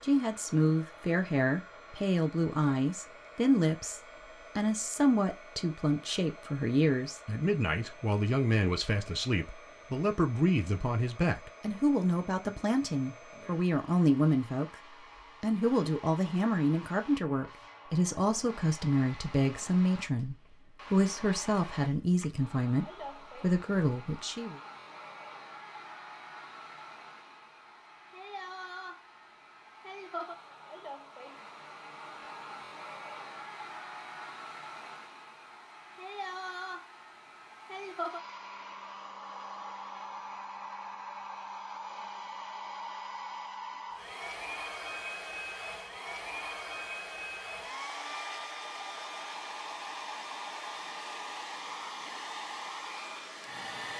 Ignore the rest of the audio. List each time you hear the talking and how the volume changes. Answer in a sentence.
The talking can be heard from 0.0 to 24.6 s, at a steady volume.